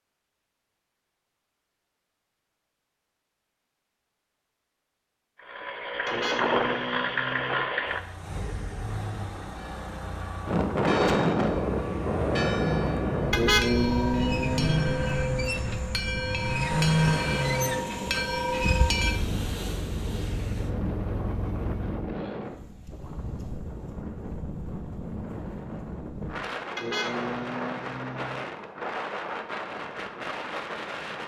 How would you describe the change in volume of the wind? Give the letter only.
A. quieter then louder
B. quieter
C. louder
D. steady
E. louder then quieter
B.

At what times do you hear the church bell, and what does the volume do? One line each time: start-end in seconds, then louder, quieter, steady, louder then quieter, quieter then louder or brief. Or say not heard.
9.6-19.2 louder.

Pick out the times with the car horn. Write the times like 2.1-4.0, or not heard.
6.0-7.7, 13.3-15.0, 26.8-28.5.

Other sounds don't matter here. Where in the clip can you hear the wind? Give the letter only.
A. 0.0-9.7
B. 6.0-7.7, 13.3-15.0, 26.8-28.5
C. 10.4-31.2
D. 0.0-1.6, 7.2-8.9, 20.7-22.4
C.